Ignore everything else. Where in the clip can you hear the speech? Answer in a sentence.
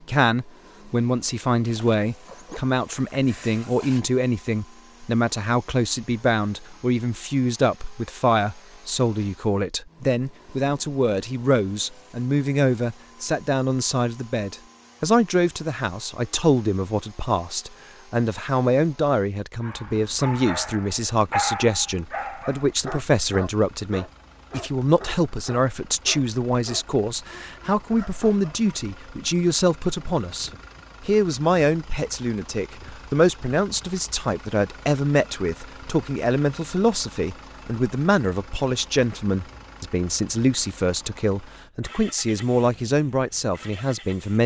The speech can be heard from 0.1 to 44.4 s.